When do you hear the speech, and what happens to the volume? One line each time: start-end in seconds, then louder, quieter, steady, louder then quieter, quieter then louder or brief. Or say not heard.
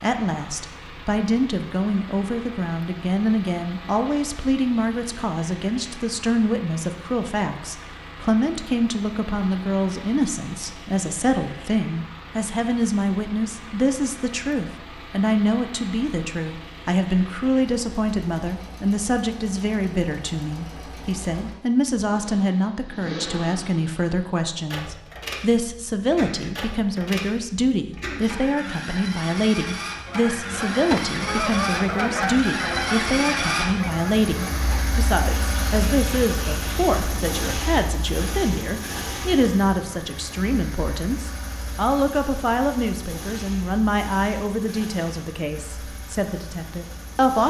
0.0-47.4 steady.